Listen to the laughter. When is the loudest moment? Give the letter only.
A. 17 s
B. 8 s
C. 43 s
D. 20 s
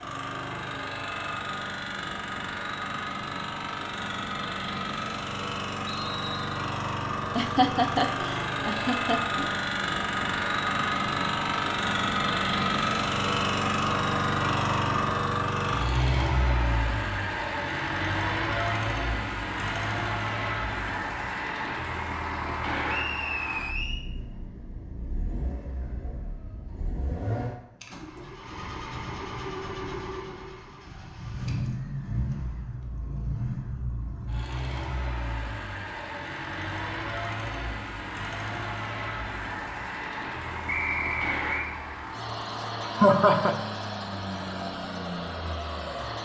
C.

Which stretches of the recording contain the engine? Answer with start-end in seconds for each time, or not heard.
0.0-46.2.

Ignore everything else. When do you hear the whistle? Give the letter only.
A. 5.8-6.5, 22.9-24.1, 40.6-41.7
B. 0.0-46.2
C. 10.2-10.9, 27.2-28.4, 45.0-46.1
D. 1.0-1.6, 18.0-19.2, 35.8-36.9
A.